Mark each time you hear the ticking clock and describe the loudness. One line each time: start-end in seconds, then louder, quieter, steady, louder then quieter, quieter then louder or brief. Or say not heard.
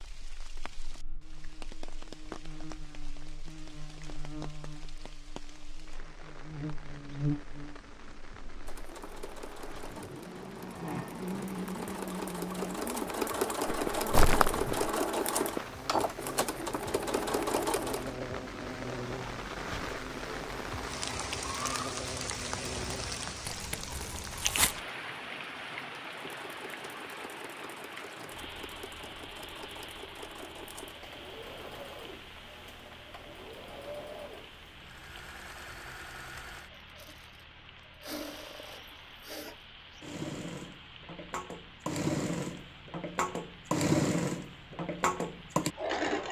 not heard.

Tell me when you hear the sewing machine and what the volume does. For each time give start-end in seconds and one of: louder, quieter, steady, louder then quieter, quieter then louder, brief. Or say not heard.
8.7-18.1 louder
26.1-46.2 louder.